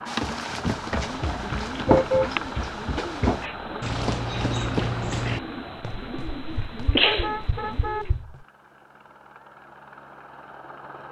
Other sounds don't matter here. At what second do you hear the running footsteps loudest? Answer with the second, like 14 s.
2 s.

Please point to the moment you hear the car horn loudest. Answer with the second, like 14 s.
2 s.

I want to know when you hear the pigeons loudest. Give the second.
7 s.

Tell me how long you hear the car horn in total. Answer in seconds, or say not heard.
2 s.